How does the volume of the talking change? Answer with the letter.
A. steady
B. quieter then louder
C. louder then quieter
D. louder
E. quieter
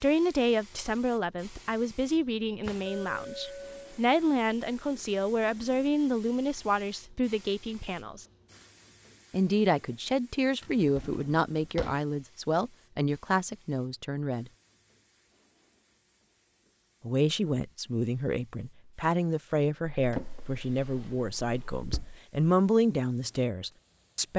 A.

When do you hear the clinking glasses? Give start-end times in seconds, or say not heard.
2.9-4.0.